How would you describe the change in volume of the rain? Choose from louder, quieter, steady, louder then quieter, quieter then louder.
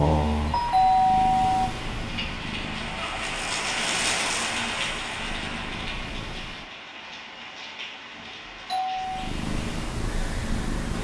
louder then quieter.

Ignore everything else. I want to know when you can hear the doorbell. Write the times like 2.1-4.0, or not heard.
0.5-1.7, 8.7-9.3.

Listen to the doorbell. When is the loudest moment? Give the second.
1 s.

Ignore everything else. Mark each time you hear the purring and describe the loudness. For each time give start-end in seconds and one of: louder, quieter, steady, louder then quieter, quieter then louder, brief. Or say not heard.
0.0-6.7 quieter then louder
8.9-10.9 brief.